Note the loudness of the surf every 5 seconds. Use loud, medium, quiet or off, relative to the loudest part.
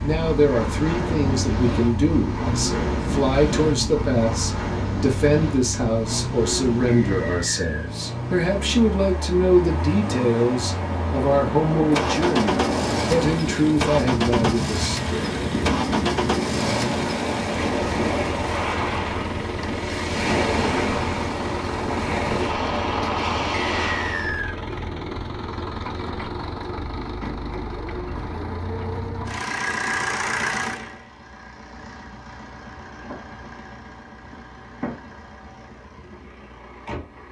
loud, medium, loud, loud, loud, off, off, off.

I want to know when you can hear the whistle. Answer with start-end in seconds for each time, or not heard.
6.8-7.9, 23.6-24.6.